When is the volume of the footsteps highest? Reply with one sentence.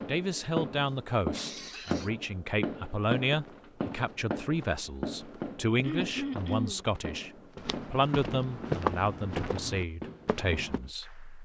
The loudest moment of the footsteps is at 9 seconds.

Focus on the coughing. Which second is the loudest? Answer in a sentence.
The loudest moment of the coughing is at 6 seconds.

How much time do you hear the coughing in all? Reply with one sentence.
You can hear the coughing for 2 seconds altogether.